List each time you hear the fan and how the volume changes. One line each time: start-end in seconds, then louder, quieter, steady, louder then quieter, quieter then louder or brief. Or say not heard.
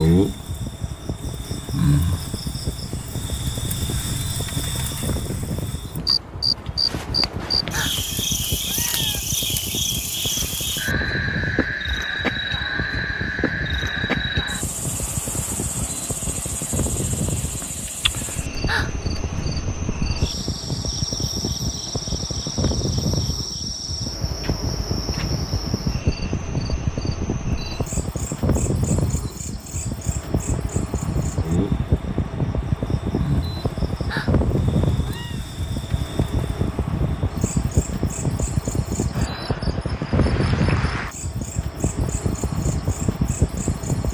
0.1-44.0 louder.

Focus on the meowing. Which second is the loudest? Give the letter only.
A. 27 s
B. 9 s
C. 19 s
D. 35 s
C.